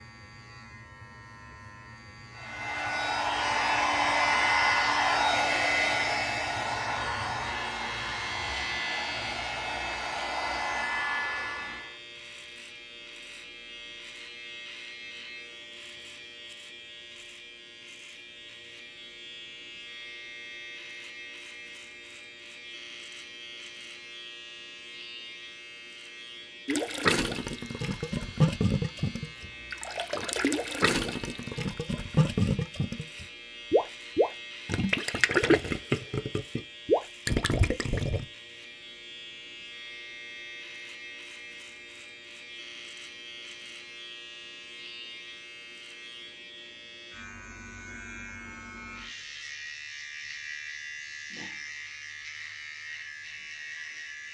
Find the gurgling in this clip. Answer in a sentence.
The gurgling can be heard from 26.6 to 38.2 s.